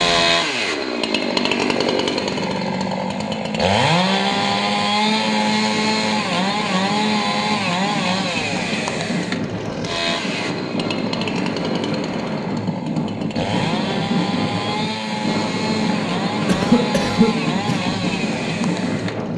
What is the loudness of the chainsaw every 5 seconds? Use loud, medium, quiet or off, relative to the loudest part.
loud, loud, medium, medium.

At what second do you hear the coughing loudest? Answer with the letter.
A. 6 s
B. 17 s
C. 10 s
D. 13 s
B.